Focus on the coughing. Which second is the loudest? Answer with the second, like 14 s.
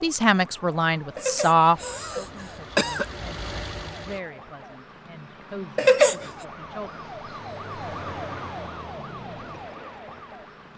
6 s.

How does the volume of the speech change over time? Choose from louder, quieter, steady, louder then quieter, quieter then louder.
quieter.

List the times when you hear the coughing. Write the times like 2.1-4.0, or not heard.
1.1-3.0, 5.8-6.3.